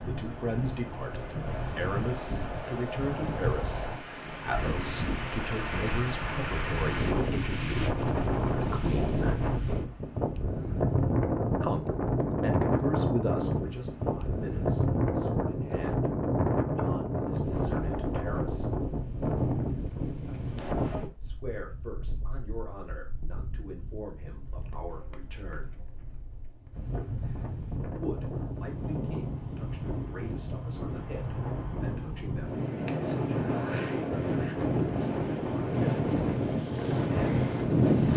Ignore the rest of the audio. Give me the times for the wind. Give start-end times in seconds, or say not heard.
0.0-38.1.